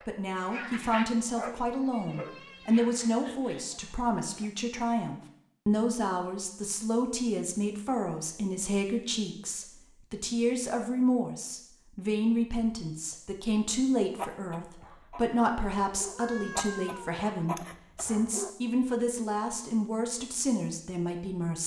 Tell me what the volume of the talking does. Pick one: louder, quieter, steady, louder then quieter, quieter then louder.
steady.